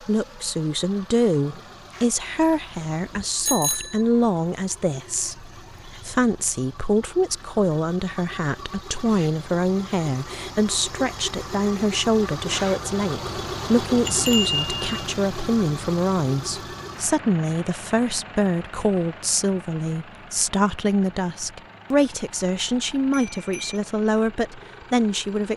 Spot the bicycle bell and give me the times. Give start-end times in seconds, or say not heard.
3.4-4.0, 14.0-15.0, 23.1-23.8.